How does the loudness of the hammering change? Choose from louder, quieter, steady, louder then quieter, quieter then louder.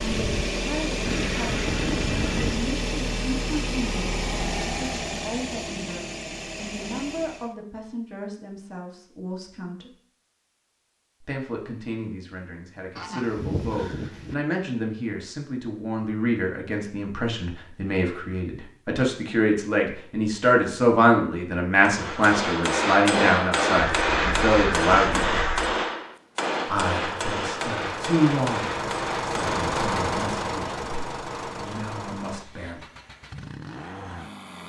quieter.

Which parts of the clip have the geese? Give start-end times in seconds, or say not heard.
1.1-2.6, 12.9-14.3, 23.8-25.8.